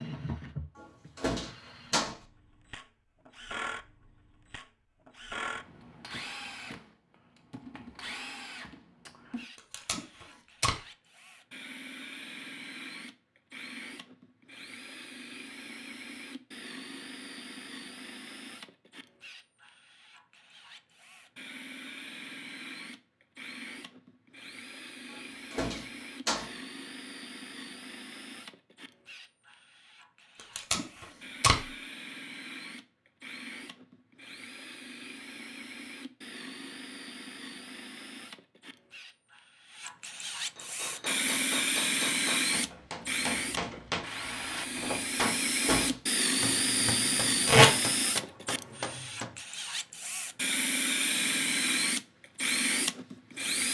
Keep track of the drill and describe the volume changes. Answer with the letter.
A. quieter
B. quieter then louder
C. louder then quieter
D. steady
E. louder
E.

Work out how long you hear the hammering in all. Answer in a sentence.
You can hear the hammering for 9 seconds altogether.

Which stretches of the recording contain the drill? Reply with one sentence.
You can hear the drill from 0.0 to 53.7 s.